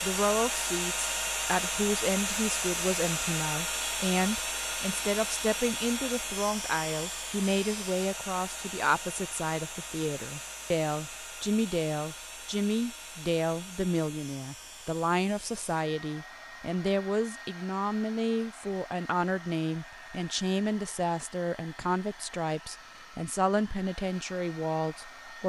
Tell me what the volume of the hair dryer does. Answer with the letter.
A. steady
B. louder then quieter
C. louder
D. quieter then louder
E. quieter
E.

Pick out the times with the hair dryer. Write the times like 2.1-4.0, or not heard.
0.0-25.4.